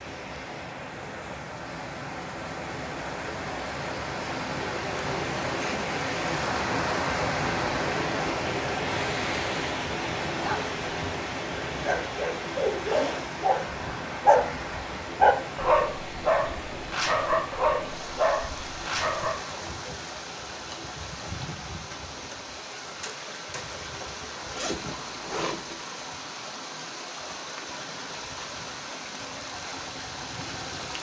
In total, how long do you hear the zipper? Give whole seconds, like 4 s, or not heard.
3 s.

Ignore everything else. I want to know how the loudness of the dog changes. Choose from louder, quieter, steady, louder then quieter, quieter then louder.
louder then quieter.